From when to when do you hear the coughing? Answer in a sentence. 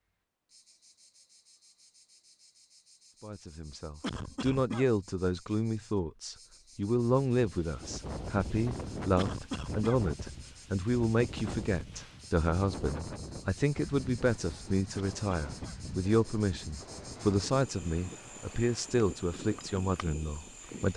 The coughing can be heard from 4.0 to 4.9 s, from 9.2 to 10.0 s and from 14.9 to 15.8 s.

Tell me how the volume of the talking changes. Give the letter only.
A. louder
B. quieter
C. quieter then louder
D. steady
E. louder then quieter
D.